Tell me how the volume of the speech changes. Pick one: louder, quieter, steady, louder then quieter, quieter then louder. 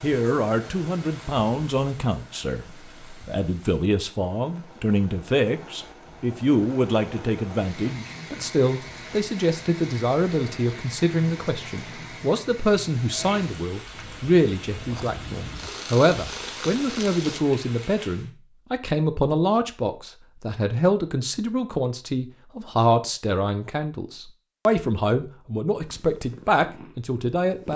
steady.